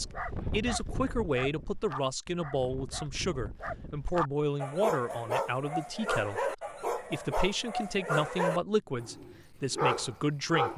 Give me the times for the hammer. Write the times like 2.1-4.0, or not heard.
not heard.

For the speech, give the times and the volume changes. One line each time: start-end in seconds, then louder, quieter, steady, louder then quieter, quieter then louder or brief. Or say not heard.
0.0-10.7 steady.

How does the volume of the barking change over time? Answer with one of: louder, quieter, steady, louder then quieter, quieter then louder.
louder.